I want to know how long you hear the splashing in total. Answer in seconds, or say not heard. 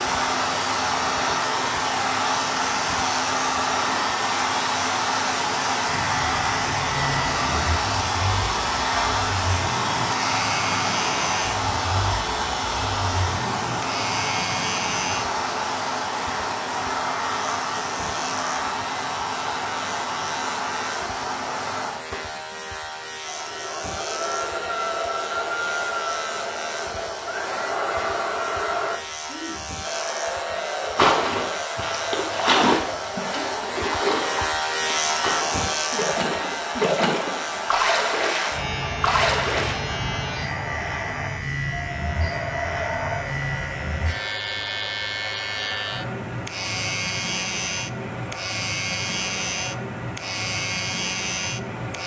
9 s.